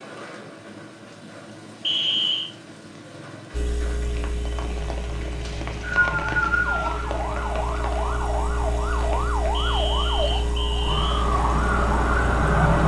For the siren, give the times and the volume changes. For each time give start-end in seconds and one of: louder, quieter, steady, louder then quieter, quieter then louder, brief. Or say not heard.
6.0-12.8 louder.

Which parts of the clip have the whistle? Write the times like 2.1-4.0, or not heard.
1.8-2.5, 5.4-6.8, 9.5-11.2.